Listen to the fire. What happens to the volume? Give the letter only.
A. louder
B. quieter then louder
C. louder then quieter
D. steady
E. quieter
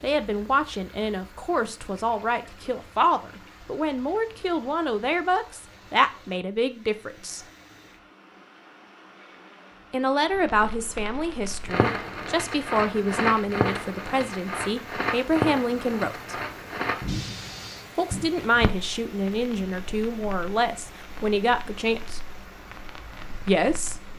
E.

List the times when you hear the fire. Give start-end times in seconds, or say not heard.
10.3-24.1.